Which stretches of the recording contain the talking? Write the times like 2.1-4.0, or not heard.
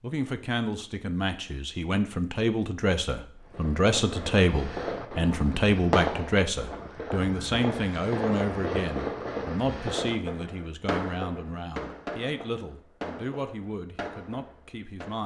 0.0-15.2.